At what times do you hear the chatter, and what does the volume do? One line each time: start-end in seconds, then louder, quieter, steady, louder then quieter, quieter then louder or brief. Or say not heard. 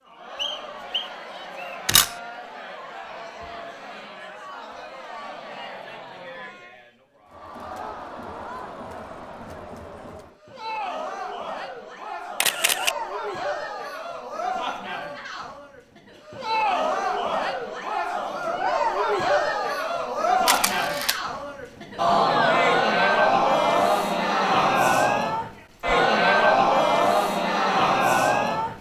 0.0-28.7 louder.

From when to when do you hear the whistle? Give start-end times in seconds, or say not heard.
0.3-1.8.